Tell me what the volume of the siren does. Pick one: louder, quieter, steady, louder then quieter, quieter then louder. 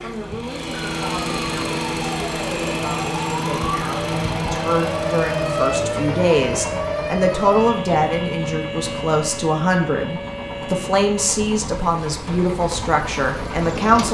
louder then quieter.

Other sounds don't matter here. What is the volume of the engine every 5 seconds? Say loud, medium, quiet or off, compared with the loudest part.
loud, medium, medium.